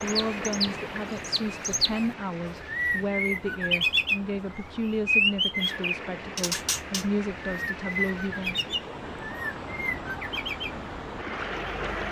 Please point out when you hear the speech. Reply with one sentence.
You can hear the speech from 0.0 to 8.6 s.